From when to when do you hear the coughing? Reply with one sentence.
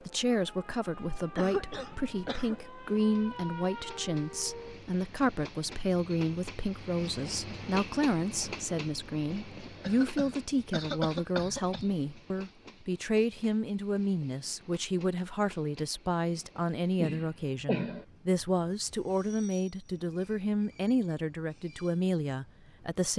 The coughing can be heard from 1.4 to 2.6 s, from 9.8 to 11.9 s and from 16.9 to 18.1 s.